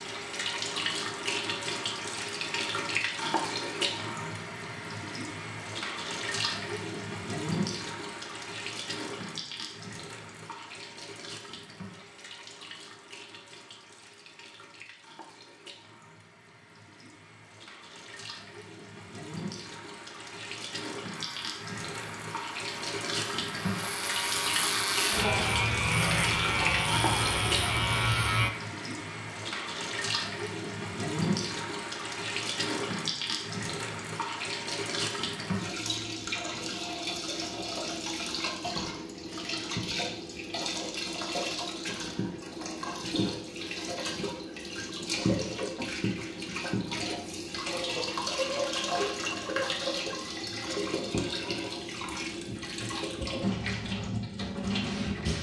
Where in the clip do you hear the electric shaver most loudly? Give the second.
26 s.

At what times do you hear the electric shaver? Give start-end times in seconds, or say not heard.
21.1-28.5.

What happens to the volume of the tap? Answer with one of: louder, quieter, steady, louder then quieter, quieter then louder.
quieter then louder.